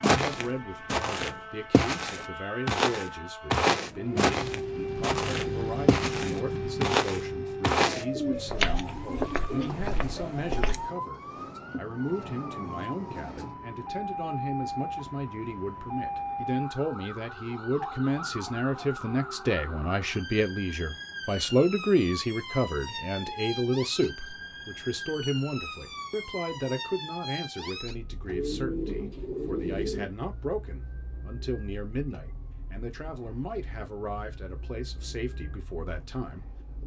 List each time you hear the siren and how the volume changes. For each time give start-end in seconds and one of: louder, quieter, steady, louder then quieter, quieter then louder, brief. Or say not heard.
0.2-36.8 quieter.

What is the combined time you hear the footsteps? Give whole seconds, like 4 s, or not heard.
11 s.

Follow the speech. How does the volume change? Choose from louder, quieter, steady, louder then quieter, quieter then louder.
louder then quieter.